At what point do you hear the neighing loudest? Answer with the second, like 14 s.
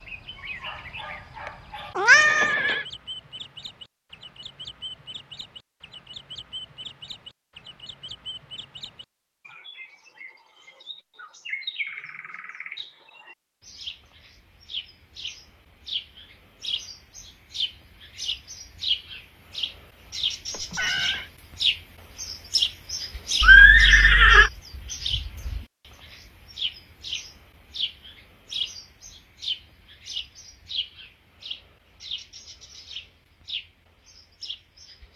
24 s.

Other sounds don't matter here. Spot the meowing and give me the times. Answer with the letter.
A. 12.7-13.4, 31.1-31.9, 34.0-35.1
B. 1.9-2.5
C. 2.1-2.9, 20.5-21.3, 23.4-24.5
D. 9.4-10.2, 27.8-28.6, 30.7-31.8
B.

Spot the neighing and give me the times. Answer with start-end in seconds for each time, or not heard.
2.1-2.9, 20.5-21.3, 23.4-24.5.